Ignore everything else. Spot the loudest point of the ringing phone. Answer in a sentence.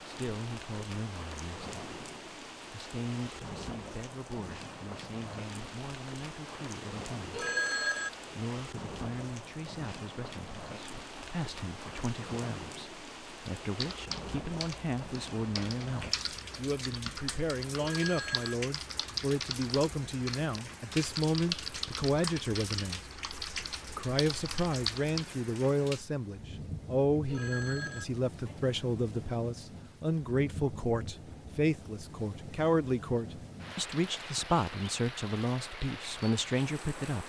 The volume of the ringing phone peaks at 8 seconds.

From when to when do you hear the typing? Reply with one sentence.
The typing can be heard from 13.8 to 25.2 s.